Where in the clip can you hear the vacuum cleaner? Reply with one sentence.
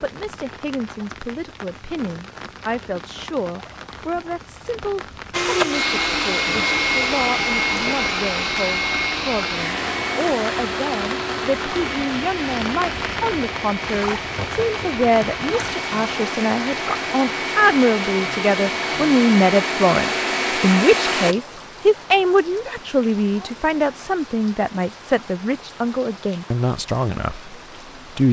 You can hear the vacuum cleaner from 5.3 to 21.4 s.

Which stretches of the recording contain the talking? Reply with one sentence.
You can hear the talking from 0.0 to 28.2 s.